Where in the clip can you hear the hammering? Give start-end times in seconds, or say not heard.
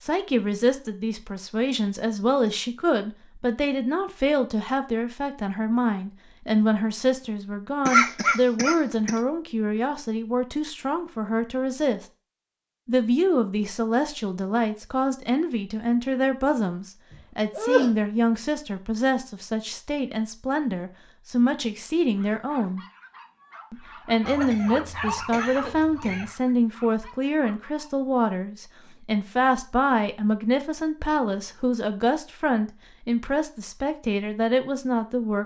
not heard.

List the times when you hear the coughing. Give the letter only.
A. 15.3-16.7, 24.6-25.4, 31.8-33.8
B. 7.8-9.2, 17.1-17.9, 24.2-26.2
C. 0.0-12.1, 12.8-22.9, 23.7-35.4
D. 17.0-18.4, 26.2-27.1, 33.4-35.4
B.